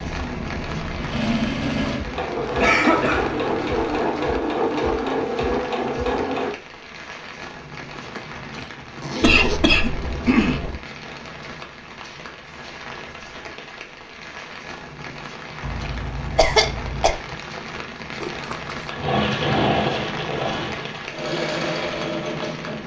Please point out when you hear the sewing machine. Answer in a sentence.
The sewing machine can be heard from 0.0 to 6.5 s and from 18.9 to 22.8 s.